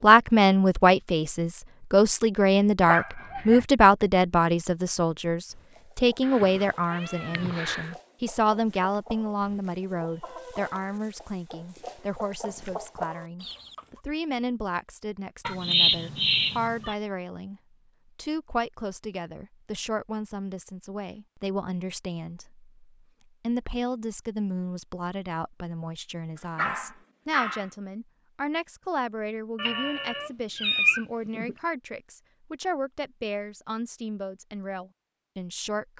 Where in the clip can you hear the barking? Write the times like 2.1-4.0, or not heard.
2.9-3.6, 26.6-27.7.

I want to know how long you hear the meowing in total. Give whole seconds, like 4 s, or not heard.
5 s.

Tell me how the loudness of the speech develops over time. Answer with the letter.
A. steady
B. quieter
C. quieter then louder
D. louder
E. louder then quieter
B.